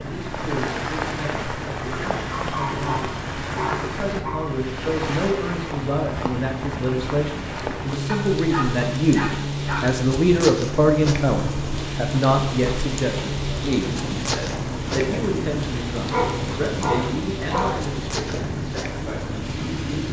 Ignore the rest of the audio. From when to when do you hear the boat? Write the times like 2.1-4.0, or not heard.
0.0-20.0.